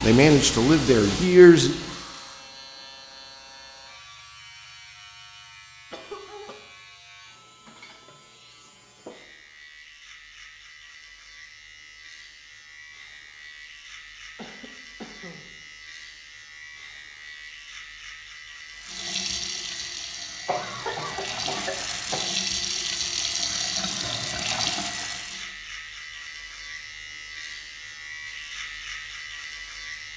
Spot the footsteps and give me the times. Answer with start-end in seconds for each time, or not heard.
not heard.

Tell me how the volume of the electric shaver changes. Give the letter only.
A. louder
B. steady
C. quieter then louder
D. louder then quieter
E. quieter
A.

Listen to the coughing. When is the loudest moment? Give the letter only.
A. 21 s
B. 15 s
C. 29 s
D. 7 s
A.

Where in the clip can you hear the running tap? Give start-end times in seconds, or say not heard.
0.0-2.5, 18.8-25.6.